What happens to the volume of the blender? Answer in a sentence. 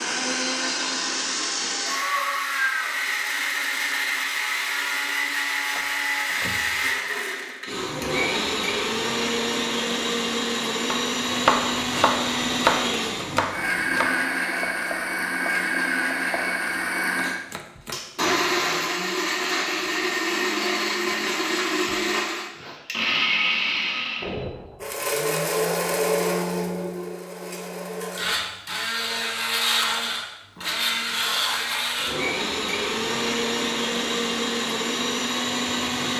The volume of the blender stays about the same.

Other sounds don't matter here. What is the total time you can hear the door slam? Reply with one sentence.
The door slam can be heard for 2 seconds in total.